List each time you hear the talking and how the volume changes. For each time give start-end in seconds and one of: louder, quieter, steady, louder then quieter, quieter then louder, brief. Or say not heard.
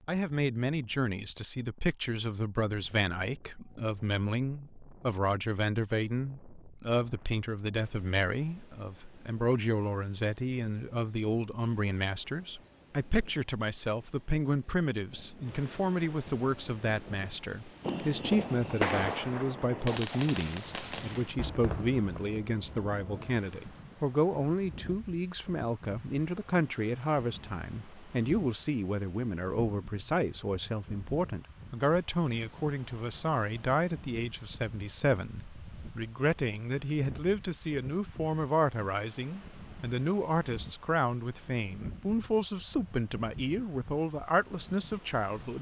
0.1-45.5 steady.